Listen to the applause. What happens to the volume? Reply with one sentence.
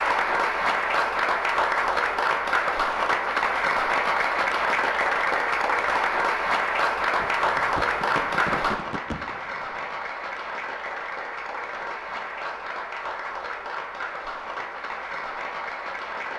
The volume of the applause goes down.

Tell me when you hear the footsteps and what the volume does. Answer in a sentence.
The footsteps can't be heard in this clip.